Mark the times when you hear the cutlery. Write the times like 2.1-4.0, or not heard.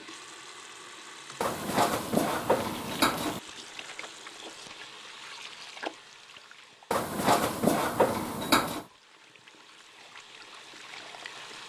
1.4-3.4, 6.9-8.8.